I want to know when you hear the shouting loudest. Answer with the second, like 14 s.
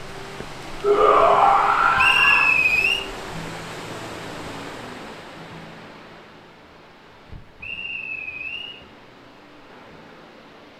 1 s.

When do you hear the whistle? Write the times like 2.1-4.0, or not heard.
1.9-3.0, 7.6-8.8.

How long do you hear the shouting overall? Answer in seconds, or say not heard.
2 s.